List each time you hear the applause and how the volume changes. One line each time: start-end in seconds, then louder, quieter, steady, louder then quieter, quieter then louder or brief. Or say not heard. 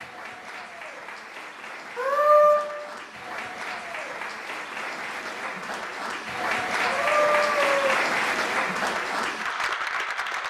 0.0-10.4 louder.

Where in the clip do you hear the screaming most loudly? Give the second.
2 s.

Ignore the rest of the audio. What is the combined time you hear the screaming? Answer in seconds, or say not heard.
2 s.